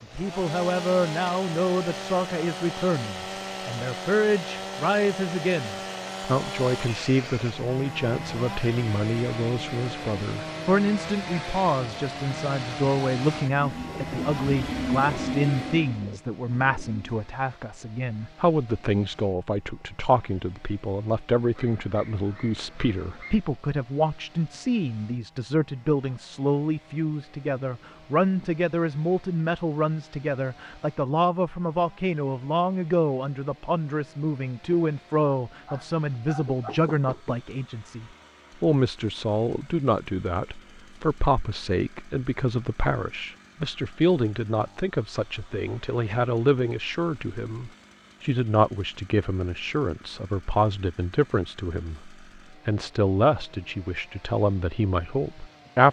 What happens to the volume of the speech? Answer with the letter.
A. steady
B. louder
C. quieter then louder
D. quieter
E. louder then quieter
A.